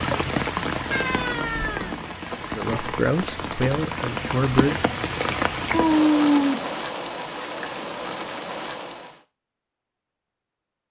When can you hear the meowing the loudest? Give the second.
6 s.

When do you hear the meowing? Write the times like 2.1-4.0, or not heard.
0.9-1.9, 5.7-6.8.